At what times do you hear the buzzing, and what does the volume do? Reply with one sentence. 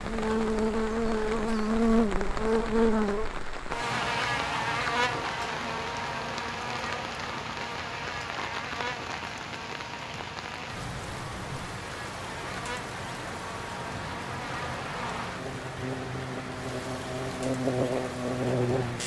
The buzzing can be heard from 0.0 to 19.0 s, getting quieter then louder.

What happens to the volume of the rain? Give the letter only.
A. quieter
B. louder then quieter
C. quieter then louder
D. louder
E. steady
E.